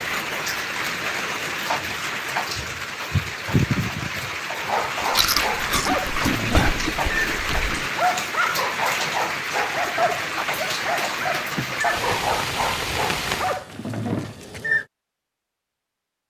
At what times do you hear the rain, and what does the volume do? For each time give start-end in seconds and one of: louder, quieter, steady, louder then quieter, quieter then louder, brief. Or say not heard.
0.0-13.6 steady.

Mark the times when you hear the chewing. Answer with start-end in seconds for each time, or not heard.
5.1-7.8.